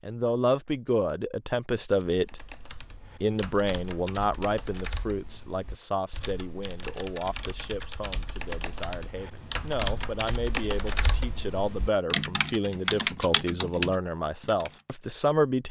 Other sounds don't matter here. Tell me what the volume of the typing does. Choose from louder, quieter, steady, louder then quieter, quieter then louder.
louder.